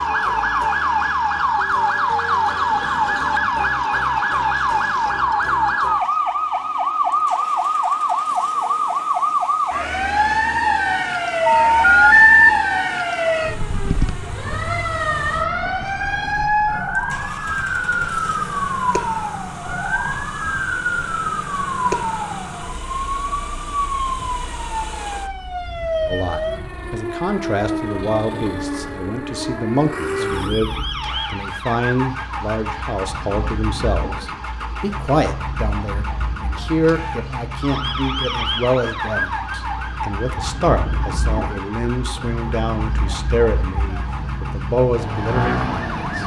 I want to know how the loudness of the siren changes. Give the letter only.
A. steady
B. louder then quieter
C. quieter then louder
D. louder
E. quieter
E.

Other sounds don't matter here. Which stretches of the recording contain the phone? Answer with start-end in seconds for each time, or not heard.
11.4-12.5.